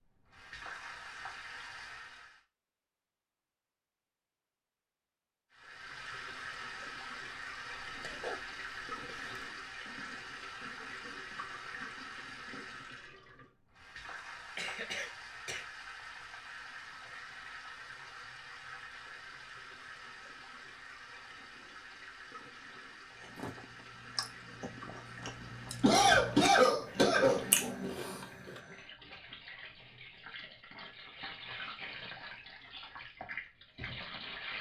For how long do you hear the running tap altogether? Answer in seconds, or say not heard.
31 s.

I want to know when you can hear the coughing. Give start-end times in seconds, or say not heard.
7.8-9.4, 14.6-15.6, 25.8-27.7.